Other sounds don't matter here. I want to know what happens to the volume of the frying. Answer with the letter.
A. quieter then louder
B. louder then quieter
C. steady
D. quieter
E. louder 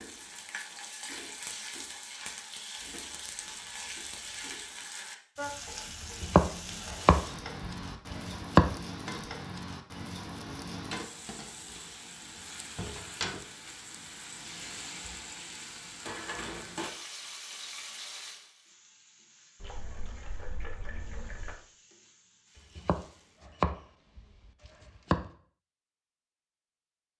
D.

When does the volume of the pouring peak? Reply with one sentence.
The loudest moment of the pouring is at 21 seconds.